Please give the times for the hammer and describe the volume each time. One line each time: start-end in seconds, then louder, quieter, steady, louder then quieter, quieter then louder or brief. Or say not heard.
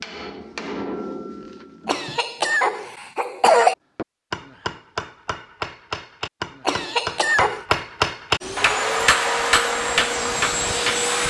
0.0-2.2 brief
4.0-11.2 louder.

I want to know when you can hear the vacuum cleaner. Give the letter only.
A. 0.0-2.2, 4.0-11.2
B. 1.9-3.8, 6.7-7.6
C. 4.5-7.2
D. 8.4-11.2
D.